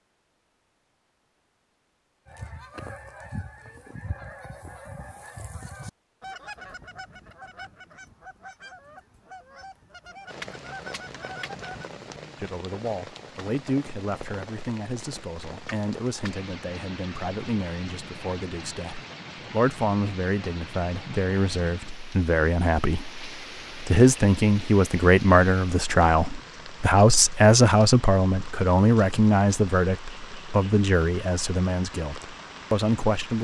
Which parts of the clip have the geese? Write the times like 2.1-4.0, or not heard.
2.2-11.9.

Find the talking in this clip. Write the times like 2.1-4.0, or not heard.
12.4-33.3.